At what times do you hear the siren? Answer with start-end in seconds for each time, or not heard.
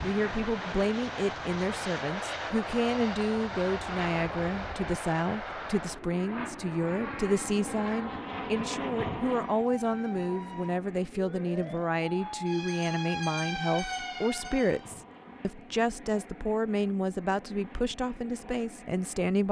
9.4-14.9.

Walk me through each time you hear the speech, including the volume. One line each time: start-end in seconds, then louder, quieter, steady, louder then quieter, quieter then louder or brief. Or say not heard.
0.0-19.4 steady.